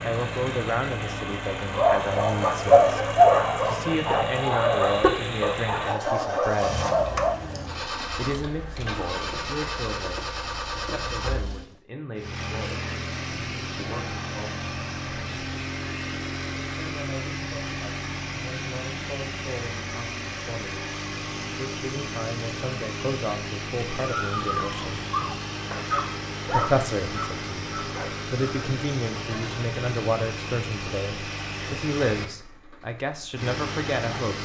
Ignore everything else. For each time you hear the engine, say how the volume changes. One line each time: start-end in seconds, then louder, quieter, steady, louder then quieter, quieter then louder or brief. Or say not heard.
0.0-34.4 steady.